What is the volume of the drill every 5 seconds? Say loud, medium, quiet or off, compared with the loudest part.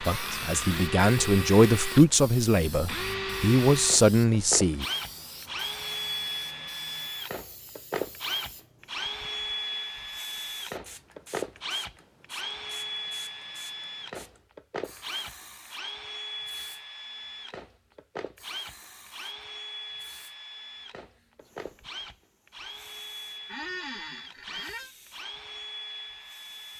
loud, loud, loud, medium, medium, medium.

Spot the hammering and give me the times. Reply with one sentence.
You can't hear the hammering here.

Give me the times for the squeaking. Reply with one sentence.
You can hear the squeaking from 0.0 to 0.8 s and from 23.4 to 24.9 s.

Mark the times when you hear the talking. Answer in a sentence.
The talking can be heard from 0.0 to 4.8 s.